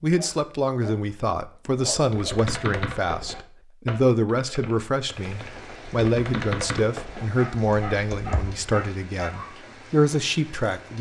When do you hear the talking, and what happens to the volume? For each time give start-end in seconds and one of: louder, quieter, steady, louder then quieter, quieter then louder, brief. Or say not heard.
0.0-10.9 steady.